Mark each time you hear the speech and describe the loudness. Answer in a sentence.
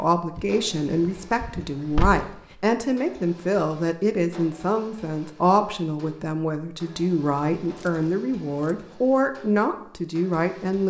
The speech can be heard from 0.0 to 10.8 s, at a steady volume.